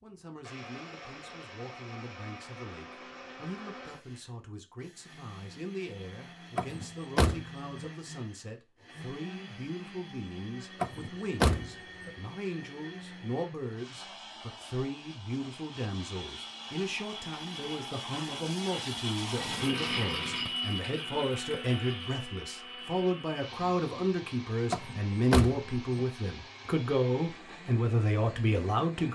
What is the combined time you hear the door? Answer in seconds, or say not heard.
4 s.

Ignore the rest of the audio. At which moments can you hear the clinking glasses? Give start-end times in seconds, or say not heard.
19.4-20.5.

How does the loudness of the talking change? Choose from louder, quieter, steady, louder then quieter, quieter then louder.
louder.